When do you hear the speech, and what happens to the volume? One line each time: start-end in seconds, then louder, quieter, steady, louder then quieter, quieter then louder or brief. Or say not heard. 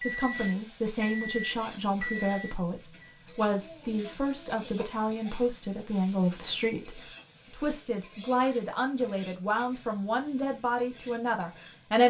0.0-12.0 steady.